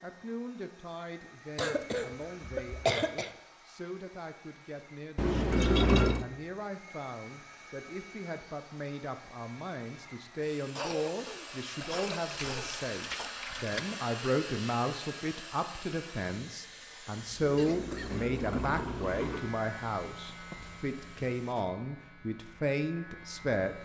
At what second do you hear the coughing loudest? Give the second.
3 s.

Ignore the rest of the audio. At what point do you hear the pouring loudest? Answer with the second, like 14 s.
6 s.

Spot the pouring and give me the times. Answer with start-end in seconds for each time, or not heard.
5.2-6.2, 11.8-13.8, 17.4-19.4.